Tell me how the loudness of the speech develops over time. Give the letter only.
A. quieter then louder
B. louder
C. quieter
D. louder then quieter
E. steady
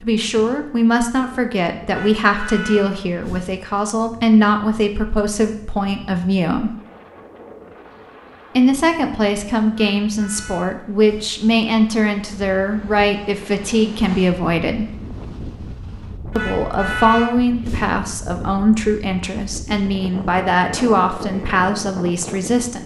E.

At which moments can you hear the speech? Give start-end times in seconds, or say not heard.
0.0-6.8, 8.6-14.8, 16.4-22.8.